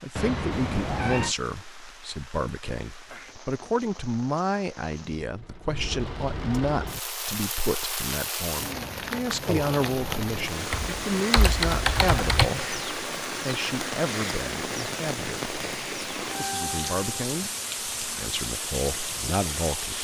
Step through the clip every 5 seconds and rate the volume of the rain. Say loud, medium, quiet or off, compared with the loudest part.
quiet, loud, loud, loud.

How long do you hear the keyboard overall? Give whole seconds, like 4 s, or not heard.
2 s.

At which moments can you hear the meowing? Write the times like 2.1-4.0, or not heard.
0.1-1.4.